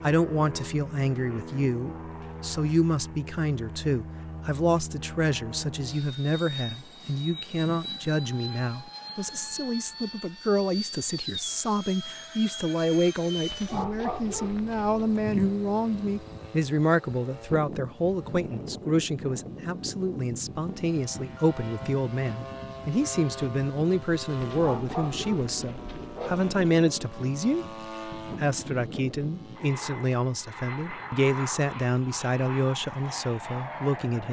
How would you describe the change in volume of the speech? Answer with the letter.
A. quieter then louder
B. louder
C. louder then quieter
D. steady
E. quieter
D.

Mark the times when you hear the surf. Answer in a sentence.
You can't hear the surf here.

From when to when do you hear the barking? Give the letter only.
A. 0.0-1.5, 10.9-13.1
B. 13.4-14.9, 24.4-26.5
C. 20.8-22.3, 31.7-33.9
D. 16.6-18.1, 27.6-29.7
B.